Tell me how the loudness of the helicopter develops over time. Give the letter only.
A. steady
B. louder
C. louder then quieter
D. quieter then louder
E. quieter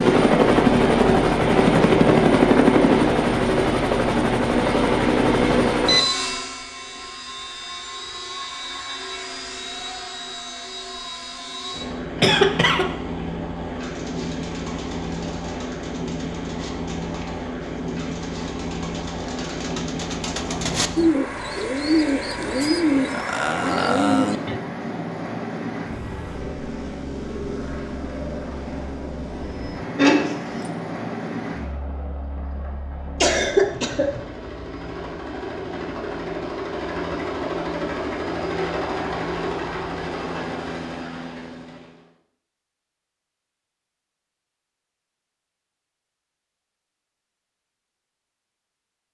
E.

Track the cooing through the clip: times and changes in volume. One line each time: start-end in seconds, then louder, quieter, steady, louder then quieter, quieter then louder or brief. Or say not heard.
13.8-24.6 louder.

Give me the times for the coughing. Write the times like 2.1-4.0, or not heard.
12.2-12.8, 29.9-30.7, 33.2-34.2.